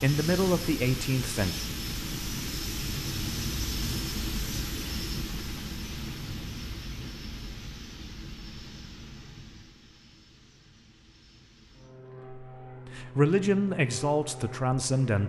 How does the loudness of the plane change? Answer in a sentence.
The loudness of the plane goes down, then up.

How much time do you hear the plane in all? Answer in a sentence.
The plane can be heard for 15 seconds in total.